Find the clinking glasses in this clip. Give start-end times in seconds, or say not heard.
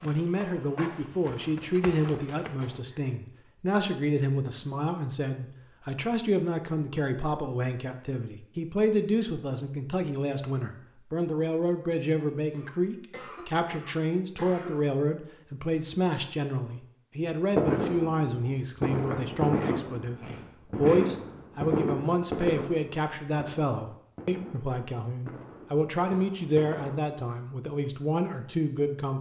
not heard.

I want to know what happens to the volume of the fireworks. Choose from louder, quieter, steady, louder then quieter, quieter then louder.
quieter.